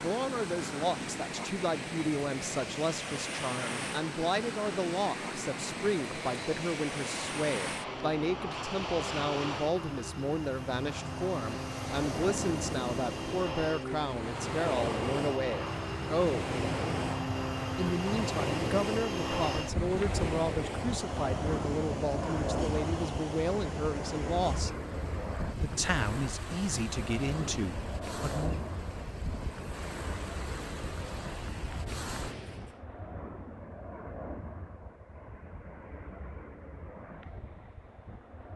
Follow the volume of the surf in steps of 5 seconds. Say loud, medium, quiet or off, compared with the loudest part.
loud, loud, loud, loud, loud, medium, medium, off.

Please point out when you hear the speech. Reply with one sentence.
You can hear the speech from 0.0 to 16.5 s, from 17.8 to 24.7 s and from 25.6 to 28.6 s.